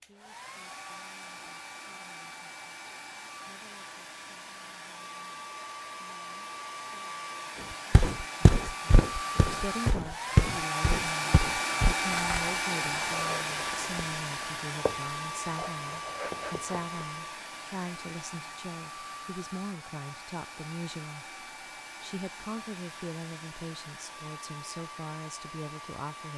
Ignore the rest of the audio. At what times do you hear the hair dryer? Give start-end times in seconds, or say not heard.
0.0-26.3.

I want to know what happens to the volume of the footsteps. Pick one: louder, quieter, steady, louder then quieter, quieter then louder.
quieter.